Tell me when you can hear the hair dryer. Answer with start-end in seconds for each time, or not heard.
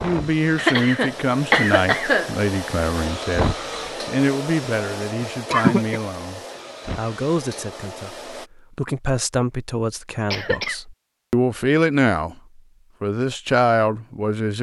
0.0-8.5.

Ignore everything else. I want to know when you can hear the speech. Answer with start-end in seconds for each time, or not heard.
0.0-12.3, 13.0-14.5.